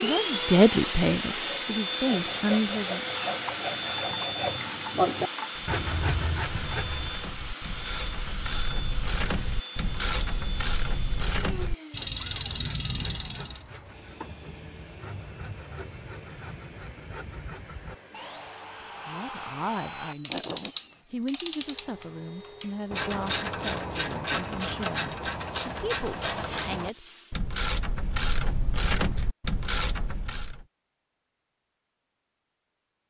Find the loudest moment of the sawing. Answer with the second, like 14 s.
5 s.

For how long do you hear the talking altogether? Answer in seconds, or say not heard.
11 s.